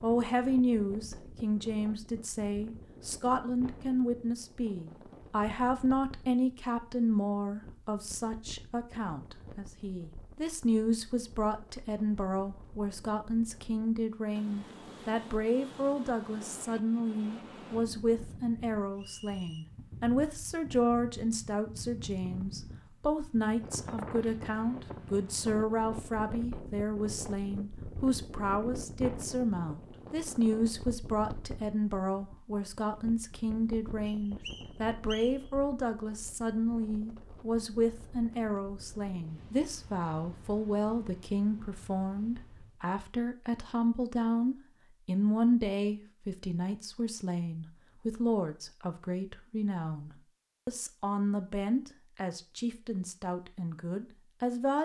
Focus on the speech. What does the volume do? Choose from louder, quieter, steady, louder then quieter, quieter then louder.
steady.